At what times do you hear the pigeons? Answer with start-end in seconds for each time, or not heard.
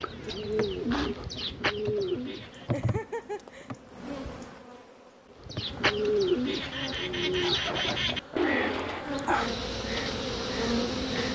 0.0-2.7, 5.4-11.2.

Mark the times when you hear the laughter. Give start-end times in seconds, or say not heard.
2.7-3.7, 7.7-8.6.